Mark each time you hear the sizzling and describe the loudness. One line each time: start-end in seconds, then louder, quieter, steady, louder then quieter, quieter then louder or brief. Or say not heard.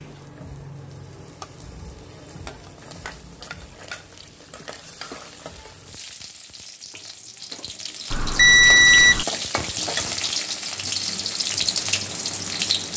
0.0-12.9 louder.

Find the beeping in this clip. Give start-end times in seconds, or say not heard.
8.1-9.2.